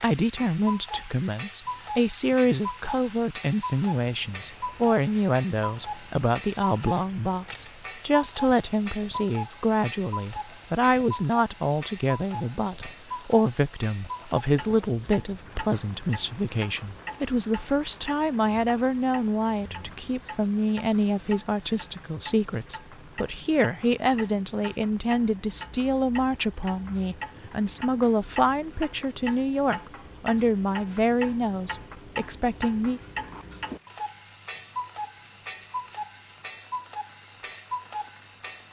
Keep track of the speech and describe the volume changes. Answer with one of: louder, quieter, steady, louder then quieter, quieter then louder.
steady.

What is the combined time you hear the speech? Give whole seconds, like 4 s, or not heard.
33 s.